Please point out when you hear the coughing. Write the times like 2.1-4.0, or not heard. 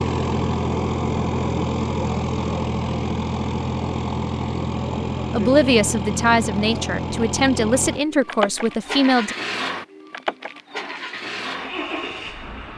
not heard.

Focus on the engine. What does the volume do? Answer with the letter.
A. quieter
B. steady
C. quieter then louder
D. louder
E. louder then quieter
A.